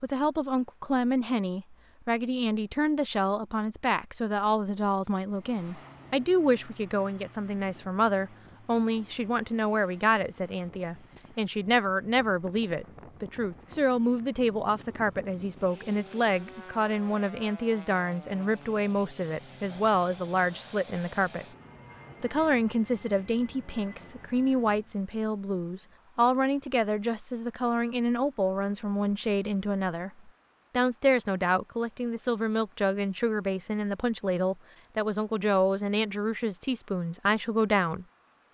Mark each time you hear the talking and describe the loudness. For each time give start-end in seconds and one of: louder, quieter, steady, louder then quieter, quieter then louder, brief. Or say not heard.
0.0-21.4 steady
22.2-38.0 steady.